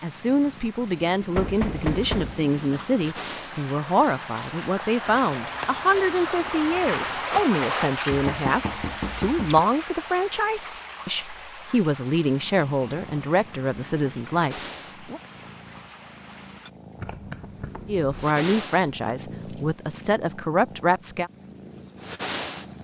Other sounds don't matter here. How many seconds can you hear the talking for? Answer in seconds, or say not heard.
19 s.